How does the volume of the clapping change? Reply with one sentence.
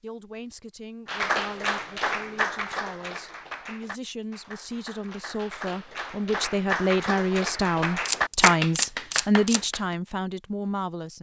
The loudness of the clapping goes down, then up.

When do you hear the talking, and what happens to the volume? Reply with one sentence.
You can hear the talking from 0.0 to 11.1 s, getting louder.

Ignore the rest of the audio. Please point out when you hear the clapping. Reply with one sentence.
The clapping can be heard from 1.1 to 9.9 s.